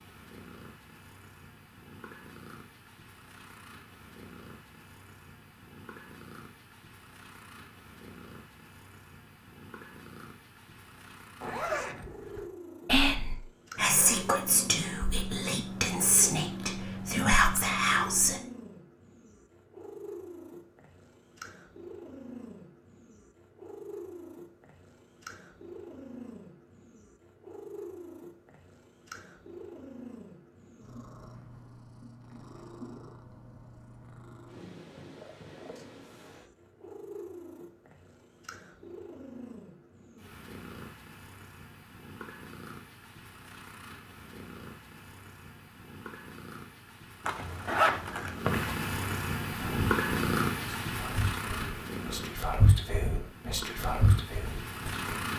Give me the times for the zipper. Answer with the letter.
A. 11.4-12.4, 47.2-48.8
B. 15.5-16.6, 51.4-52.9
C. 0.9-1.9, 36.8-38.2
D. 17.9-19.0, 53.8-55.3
A.